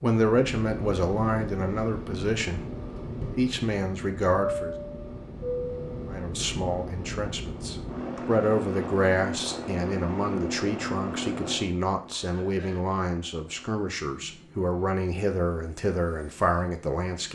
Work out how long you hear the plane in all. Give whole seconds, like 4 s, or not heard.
17 s.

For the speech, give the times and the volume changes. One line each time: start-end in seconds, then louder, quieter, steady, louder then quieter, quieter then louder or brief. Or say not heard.
0.0-2.6 brief
3.3-4.8 brief
6.0-17.3 steady.